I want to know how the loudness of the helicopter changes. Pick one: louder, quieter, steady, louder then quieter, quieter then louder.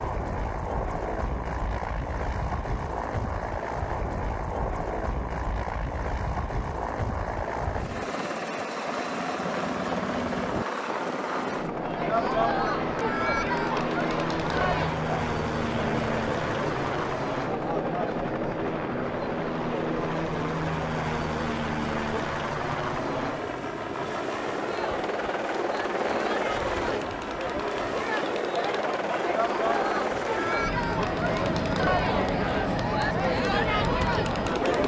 steady.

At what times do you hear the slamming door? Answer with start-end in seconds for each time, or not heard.
not heard.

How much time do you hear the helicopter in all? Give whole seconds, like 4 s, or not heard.
35 s.